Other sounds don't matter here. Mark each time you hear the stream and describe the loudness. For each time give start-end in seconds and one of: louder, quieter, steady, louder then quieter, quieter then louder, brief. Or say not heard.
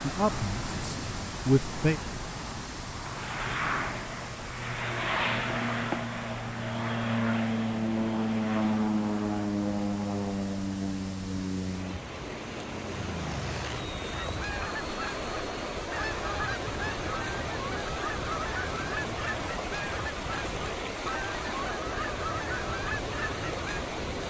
0.0-24.2 quieter then louder.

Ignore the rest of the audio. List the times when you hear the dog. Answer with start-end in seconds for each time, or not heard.
not heard.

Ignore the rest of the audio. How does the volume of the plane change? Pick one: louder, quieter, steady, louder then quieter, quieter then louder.
louder then quieter.